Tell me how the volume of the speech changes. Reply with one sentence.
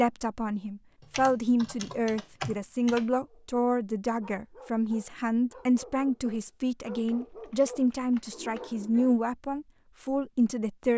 The volume of the speech stays about the same.